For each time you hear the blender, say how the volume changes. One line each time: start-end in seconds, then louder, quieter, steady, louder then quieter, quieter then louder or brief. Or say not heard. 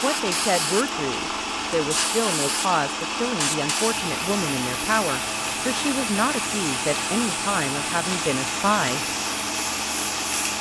0.0-10.5 steady.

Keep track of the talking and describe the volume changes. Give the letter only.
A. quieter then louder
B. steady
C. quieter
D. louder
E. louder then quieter
B.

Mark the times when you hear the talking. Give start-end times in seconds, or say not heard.
0.0-9.1.